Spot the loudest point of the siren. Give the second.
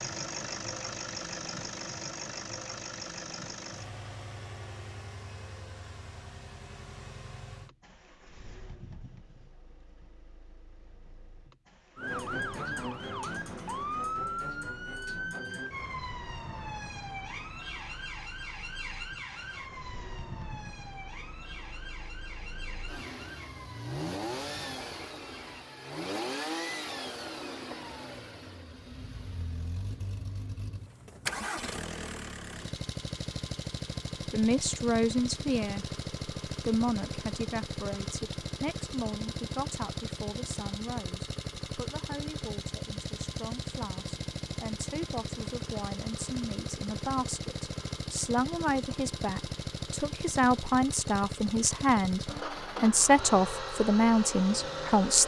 14 s.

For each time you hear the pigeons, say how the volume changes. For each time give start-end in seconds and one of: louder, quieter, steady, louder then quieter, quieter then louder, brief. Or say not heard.
not heard.